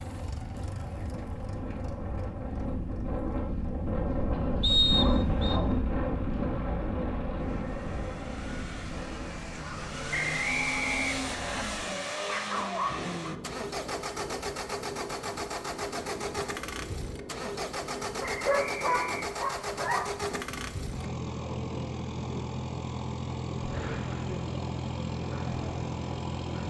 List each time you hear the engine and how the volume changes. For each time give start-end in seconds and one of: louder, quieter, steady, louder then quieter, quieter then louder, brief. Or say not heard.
0.0-26.6 louder.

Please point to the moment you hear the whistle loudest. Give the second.
5 s.